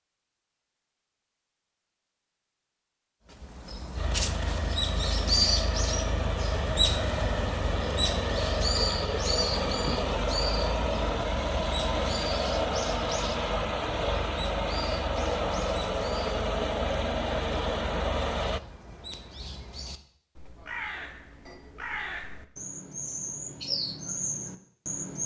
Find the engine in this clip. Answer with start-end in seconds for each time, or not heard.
4.0-18.6.